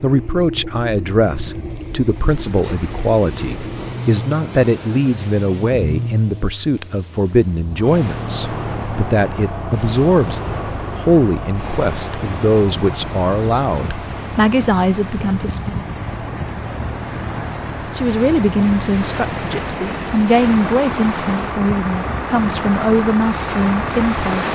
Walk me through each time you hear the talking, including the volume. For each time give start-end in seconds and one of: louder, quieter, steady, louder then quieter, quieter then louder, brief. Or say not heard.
0.0-15.8 steady
17.9-24.5 steady.